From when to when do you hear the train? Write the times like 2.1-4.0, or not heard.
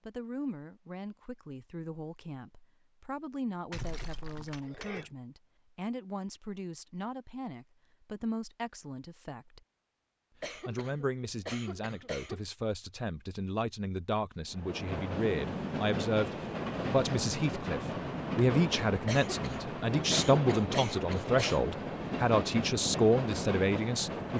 14.5-24.3.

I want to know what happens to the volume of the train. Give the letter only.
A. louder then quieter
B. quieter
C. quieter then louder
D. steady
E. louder
D.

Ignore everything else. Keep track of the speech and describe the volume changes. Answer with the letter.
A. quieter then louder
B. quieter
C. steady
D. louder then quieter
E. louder
E.